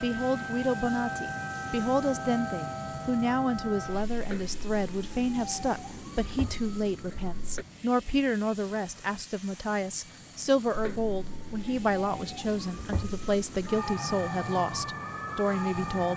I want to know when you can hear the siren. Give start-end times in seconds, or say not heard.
0.0-7.7, 10.7-16.1.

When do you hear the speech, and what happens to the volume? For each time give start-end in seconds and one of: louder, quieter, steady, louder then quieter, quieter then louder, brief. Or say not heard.
0.0-16.1 steady.